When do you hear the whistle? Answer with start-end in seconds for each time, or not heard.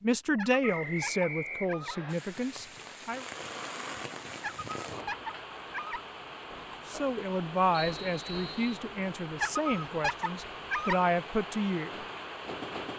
0.6-2.1, 7.8-8.8.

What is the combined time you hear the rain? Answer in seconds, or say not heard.
11 s.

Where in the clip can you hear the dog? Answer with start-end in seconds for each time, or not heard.
0.3-2.0, 4.4-6.0, 9.4-11.0.